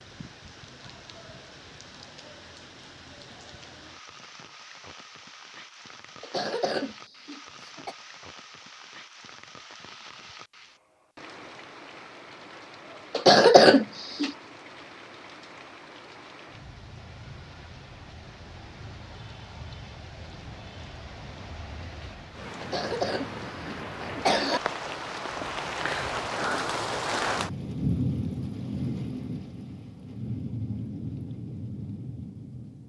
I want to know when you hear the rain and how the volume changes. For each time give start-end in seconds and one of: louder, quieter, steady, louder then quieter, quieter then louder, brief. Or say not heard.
0.0-32.8 louder.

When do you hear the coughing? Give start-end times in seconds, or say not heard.
6.2-8.0, 13.2-14.3, 22.6-24.6.